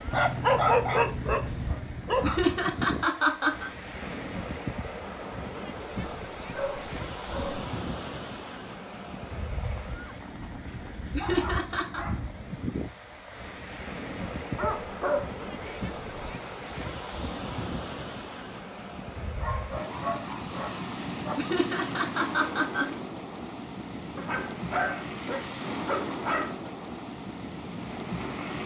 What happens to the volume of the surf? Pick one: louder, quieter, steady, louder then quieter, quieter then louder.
steady.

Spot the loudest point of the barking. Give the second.
1 s.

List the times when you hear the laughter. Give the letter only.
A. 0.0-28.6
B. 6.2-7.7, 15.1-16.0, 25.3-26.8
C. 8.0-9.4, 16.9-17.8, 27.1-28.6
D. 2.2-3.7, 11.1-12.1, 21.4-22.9
D.